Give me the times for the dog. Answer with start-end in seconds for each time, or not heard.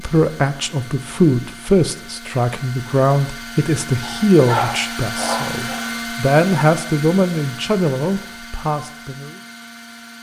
4.0-5.9.